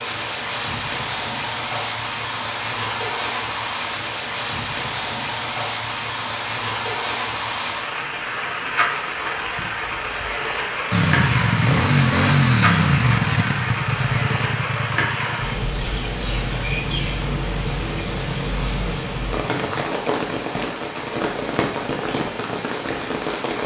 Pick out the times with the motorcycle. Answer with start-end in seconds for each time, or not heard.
10.9-19.9.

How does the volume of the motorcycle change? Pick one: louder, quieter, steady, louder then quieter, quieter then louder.
quieter.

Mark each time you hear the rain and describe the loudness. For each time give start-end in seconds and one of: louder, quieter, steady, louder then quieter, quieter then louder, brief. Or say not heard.
0.0-23.6 steady.